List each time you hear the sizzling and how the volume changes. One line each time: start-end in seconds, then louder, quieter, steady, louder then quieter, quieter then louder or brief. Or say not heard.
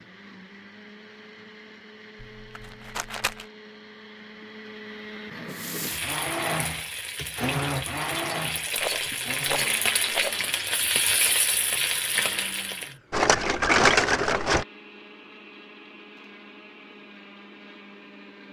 5.5-12.9 louder.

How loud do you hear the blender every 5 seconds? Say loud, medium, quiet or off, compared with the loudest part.
quiet, loud, quiet, quiet.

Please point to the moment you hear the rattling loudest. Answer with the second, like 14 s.
14 s.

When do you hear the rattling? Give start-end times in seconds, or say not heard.
2.2-3.5, 8.8-10.4, 13.1-14.7.